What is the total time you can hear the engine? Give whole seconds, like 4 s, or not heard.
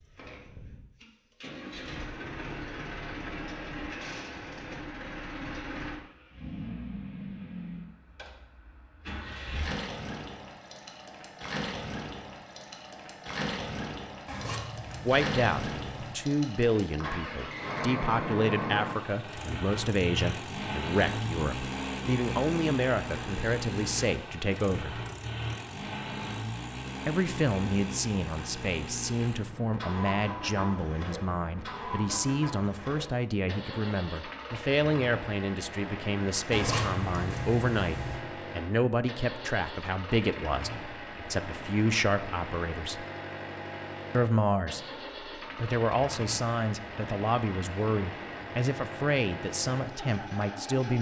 51 s.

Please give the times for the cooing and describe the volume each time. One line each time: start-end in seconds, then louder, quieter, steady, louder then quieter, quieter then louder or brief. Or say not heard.
not heard.